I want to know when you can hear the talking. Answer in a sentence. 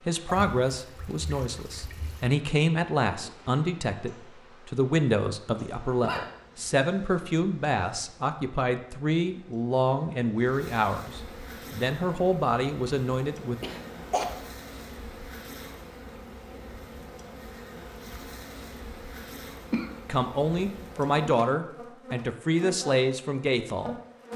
You can hear the talking from 0.1 to 13.6 s and from 20.1 to 23.9 s.